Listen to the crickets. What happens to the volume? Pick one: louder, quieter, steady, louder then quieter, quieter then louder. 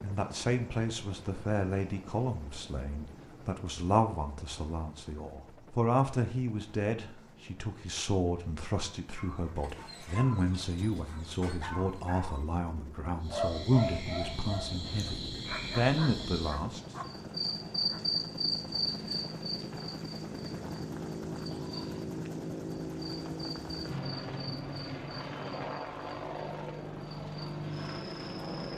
louder then quieter.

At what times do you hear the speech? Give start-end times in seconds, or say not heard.
0.0-16.9.